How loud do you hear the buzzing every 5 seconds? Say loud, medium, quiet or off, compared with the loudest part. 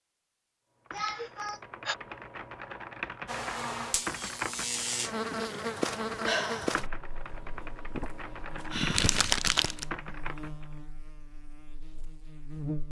loud, loud, medium.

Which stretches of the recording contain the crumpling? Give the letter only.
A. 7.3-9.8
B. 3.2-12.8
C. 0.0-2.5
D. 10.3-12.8
A.